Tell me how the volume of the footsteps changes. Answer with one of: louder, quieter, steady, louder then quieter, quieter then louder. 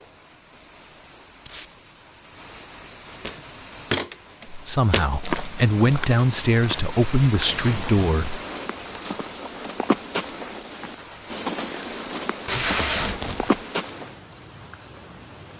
quieter then louder.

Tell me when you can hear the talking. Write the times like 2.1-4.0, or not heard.
4.5-8.4.